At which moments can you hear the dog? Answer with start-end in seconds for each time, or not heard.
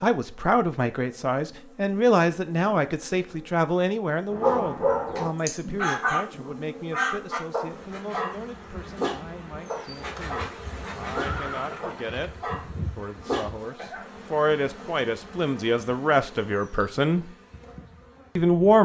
4.3-14.1.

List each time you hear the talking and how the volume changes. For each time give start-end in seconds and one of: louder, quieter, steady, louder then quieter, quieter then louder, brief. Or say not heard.
0.0-17.3 quieter then louder
18.4-18.8 brief.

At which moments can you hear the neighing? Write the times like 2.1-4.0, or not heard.
11.2-12.2.